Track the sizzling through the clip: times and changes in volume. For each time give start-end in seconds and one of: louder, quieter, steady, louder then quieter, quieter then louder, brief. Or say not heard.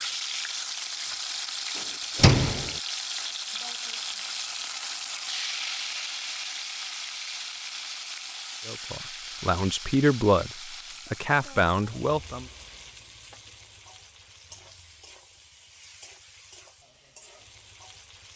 0.0-18.3 quieter.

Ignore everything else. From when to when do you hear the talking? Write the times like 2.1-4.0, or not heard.
8.7-12.4.